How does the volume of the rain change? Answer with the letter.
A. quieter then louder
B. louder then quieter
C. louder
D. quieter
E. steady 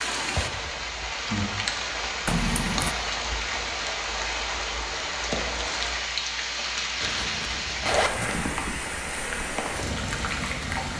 E.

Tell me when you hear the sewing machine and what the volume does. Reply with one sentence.
You can't hear the sewing machine here.